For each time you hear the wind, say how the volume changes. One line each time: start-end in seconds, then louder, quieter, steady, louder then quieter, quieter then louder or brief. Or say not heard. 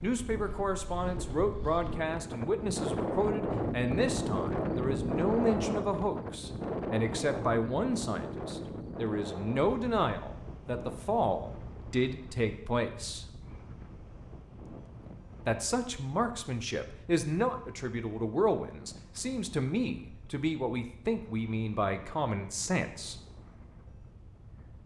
0.0-24.8 quieter.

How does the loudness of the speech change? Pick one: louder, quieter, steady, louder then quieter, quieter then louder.
steady.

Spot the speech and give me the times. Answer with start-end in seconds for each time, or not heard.
0.0-13.2, 15.4-23.1.